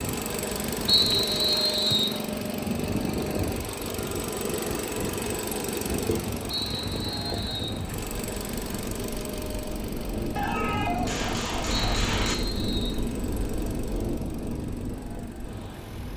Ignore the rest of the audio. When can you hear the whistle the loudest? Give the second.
1 s.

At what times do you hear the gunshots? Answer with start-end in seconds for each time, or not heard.
10.3-12.3.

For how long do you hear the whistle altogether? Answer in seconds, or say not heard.
4 s.